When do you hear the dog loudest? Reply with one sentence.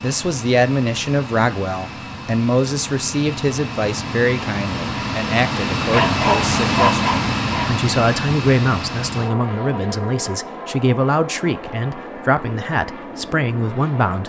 The volume of the dog peaks at 6 seconds.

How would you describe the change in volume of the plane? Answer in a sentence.
The loudness of the plane goes up, then down.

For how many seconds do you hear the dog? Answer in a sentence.
You can hear the dog for 2 seconds altogether.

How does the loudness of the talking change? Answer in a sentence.
The volume of the talking stays about the same.